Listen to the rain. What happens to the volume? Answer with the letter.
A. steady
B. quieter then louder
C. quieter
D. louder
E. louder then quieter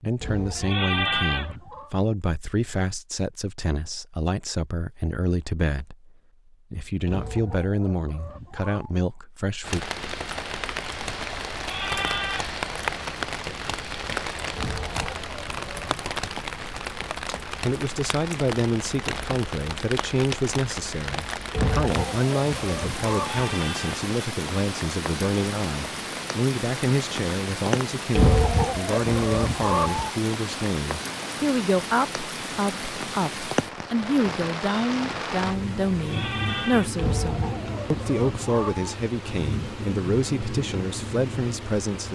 A.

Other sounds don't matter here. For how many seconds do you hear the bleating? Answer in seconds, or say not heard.
4 s.